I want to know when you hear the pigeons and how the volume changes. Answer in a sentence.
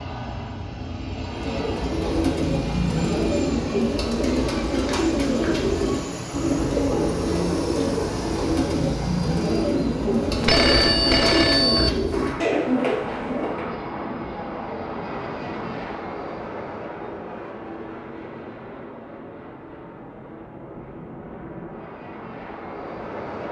The pigeons can be heard from 1.2 to 13.7 s, at a steady volume.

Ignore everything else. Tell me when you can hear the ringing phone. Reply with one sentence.
You can hear the ringing phone from 10.3 to 11.9 s.